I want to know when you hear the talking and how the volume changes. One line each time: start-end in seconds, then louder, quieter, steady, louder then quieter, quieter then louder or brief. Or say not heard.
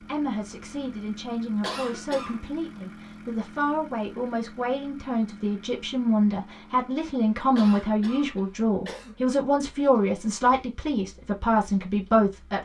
0.0-12.5 louder.